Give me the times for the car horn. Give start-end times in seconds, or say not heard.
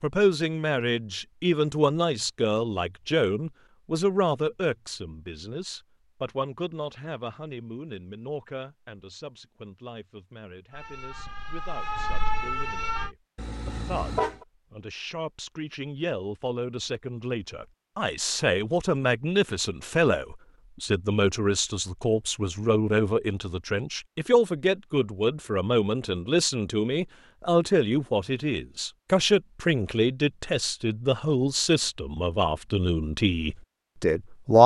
13.3-14.4.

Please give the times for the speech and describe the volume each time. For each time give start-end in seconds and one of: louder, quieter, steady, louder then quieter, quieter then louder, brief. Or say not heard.
0.0-34.6 quieter then louder.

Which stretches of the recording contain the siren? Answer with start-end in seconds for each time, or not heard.
10.7-13.1.